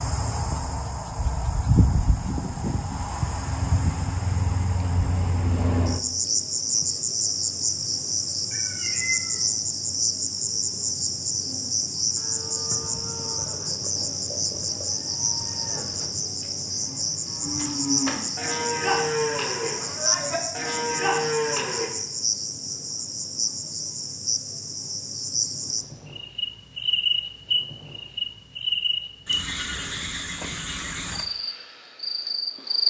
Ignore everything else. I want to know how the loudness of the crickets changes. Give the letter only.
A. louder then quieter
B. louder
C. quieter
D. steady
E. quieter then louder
D.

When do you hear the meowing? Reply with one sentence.
The meowing can be heard from 8.5 to 9.4 s.